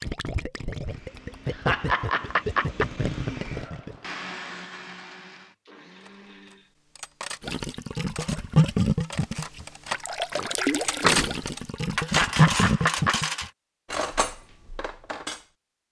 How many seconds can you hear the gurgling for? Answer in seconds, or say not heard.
10 s.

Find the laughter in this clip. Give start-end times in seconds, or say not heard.
1.4-3.0, 11.9-13.2.